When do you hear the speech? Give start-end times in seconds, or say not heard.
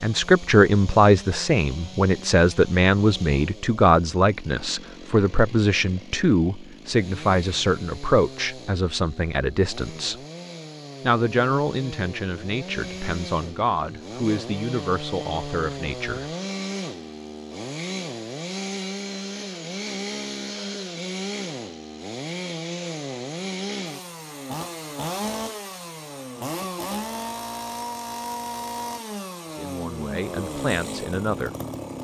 0.0-10.2, 11.0-16.3, 29.5-31.5.